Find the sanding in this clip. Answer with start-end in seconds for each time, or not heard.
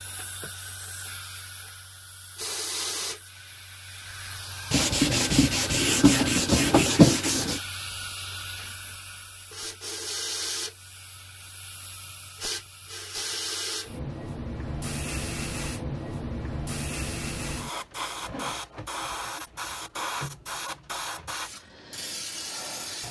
4.7-7.6.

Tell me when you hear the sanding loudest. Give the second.
7 s.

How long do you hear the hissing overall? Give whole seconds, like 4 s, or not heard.
23 s.